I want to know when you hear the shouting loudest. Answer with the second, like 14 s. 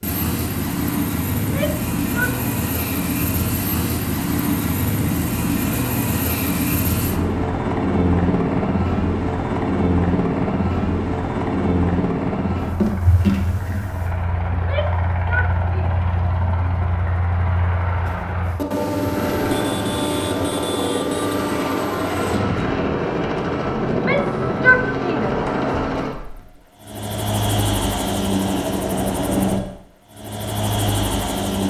25 s.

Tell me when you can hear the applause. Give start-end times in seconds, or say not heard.
not heard.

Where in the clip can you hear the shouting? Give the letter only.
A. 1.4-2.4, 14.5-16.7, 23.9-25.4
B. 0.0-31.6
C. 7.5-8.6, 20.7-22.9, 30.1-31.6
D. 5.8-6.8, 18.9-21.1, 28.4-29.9
A.